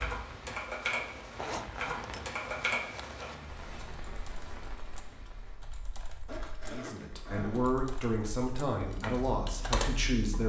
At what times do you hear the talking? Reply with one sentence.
The talking can be heard from 6.7 to 10.4 s.